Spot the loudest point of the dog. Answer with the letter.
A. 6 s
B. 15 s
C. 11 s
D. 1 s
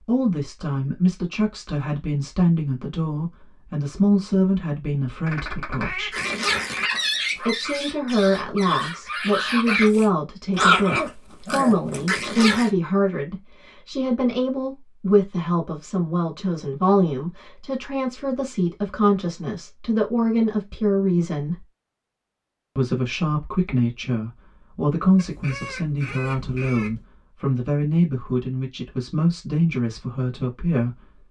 C.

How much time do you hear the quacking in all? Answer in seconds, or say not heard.
4 s.